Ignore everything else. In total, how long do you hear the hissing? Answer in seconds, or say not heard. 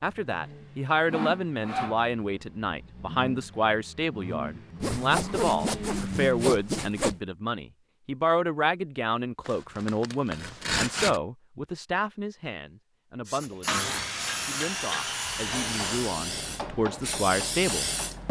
5 s.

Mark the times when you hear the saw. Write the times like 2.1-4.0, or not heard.
1.1-2.0, 4.8-7.2, 9.4-11.2, 13.7-16.2.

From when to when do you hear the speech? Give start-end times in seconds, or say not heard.
0.0-18.2.